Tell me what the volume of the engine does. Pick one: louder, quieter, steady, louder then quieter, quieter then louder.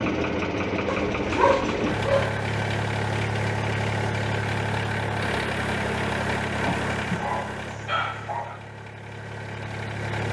quieter.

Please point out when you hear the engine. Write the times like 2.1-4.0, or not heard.
0.0-10.2.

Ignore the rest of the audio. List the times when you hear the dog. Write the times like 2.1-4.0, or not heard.
0.8-2.2, 6.6-8.6.